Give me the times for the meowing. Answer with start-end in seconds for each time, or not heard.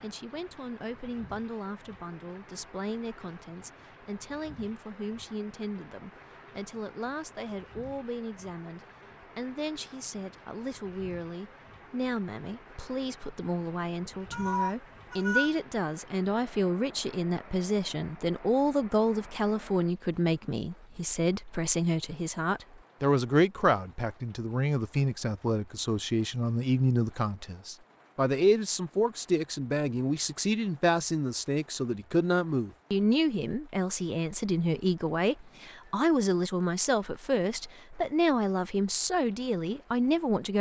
14.3-15.6.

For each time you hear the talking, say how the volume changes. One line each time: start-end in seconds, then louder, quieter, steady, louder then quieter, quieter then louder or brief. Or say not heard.
0.0-40.5 louder.